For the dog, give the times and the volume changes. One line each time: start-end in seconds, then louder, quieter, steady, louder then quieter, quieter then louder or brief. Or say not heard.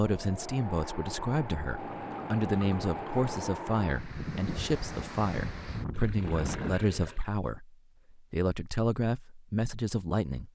not heard.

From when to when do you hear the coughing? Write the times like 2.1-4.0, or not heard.
not heard.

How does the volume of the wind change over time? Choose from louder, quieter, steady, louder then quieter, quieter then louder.
steady.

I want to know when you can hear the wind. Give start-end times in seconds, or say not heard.
0.0-6.8.